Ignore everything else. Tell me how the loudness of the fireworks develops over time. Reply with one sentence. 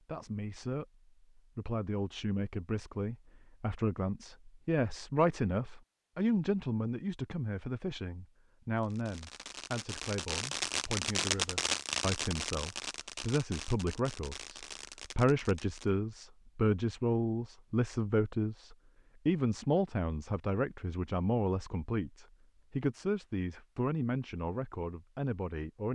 The loudness of the fireworks goes up, then down.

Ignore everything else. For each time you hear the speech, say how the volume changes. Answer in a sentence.
The speech can be heard from 0.1 to 25.9 s, at a steady volume.